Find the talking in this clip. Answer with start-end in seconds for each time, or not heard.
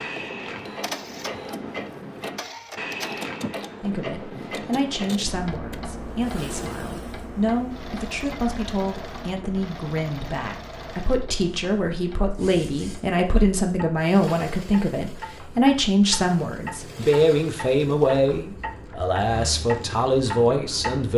3.8-21.1.